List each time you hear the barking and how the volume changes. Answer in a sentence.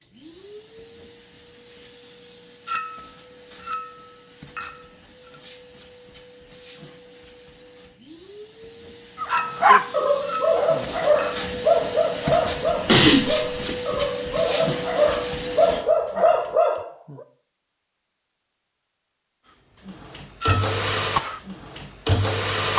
The barking can be heard from 9.2 to 17.2 s, getting quieter then louder.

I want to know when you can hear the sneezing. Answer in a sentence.
You can hear the sneezing from 12.8 to 13.6 s.